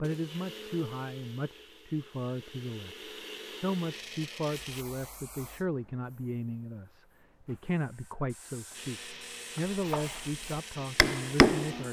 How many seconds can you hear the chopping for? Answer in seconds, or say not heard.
2 s.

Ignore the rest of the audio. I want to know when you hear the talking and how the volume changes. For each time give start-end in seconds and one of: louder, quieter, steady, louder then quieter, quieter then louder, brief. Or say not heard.
0.0-11.8 steady.